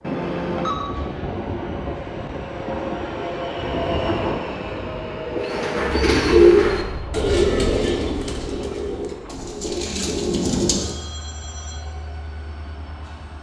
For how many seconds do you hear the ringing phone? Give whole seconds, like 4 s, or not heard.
2 s.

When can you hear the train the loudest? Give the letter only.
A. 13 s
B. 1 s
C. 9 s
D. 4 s
D.